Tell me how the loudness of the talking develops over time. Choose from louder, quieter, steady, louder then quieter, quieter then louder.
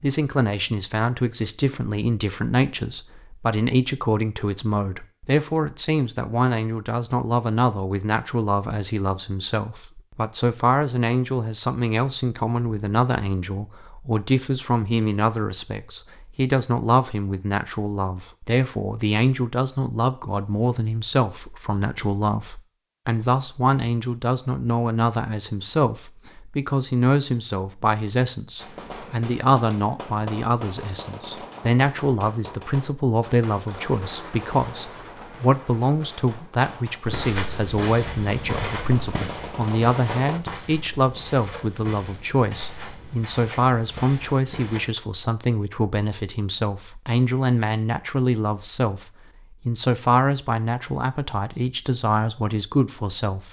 steady.